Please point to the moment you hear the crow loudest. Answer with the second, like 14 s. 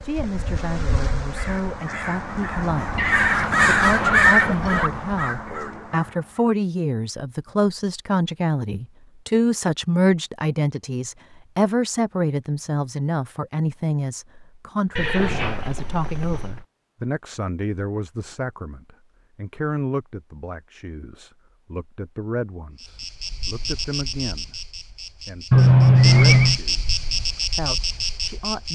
4 s.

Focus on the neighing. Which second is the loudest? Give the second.
26 s.